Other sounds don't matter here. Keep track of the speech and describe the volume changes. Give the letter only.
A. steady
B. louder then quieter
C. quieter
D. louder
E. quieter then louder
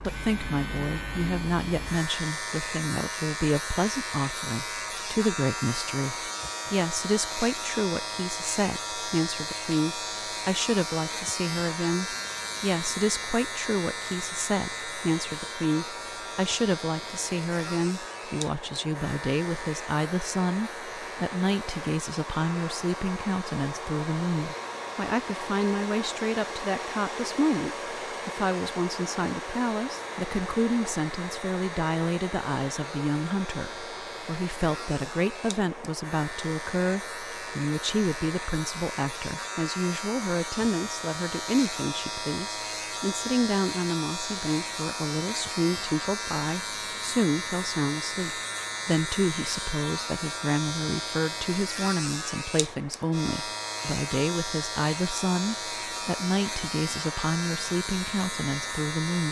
A.